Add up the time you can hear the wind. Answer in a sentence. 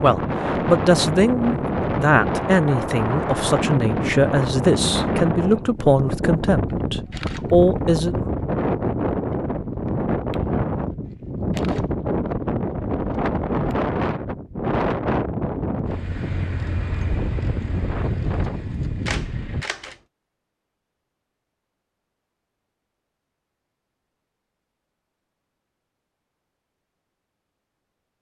The wind can be heard for 20 seconds in total.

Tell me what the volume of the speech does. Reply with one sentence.
The loudness of the speech stays about the same.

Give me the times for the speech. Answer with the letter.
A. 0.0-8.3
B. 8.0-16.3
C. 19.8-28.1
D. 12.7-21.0
A.